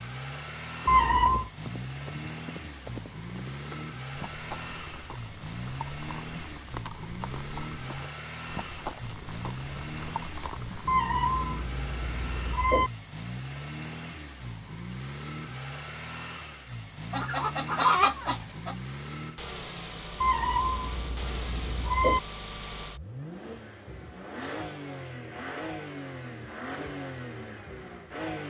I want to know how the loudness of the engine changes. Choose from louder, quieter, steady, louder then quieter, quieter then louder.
steady.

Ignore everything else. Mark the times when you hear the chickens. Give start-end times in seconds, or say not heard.
17.1-18.8.